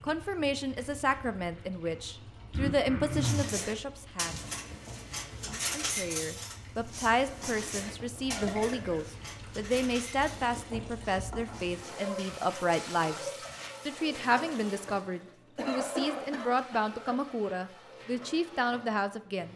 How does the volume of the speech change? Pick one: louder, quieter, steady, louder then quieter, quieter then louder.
steady.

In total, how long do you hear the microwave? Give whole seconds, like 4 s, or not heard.
not heard.